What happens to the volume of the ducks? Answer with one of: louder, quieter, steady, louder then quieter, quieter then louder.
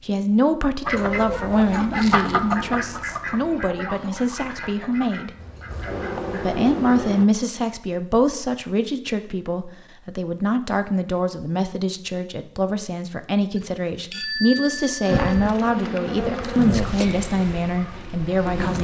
quieter.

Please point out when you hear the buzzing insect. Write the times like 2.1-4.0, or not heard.
5.3-7.2, 15.0-18.7.